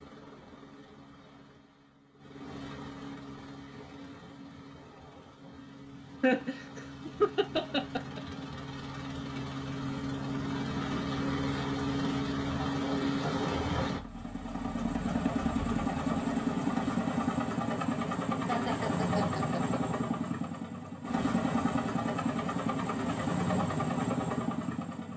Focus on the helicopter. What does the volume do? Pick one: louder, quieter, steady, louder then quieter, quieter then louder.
louder.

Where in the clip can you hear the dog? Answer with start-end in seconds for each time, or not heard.
not heard.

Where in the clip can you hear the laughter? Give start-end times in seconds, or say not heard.
6.2-8.2, 18.4-19.6.